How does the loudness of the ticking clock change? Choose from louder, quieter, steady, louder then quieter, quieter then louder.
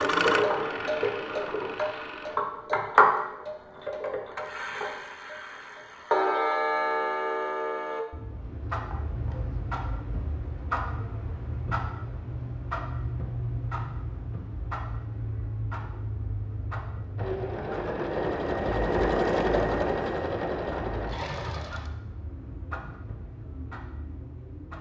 quieter.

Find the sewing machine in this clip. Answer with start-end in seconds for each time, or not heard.
0.0-2.4, 17.1-21.9.